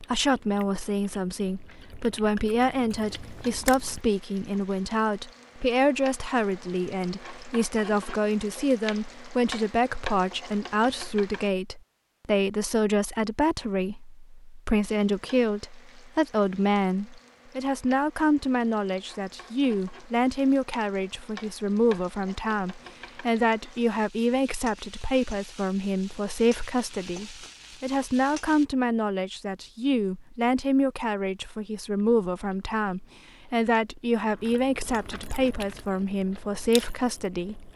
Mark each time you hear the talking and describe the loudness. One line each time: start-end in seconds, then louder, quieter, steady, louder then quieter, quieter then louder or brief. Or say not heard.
0.0-37.7 steady.